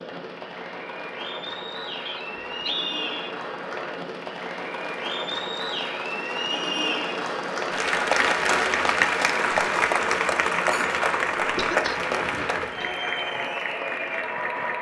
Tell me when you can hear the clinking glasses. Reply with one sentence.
The clinking glasses can't be heard in this clip.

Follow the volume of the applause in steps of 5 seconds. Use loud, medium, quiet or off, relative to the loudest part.
medium, loud, loud.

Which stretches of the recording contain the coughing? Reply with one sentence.
The coughing can be heard from 11.6 to 12.9 s.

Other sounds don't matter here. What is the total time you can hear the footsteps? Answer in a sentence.
You can't hear the footsteps here.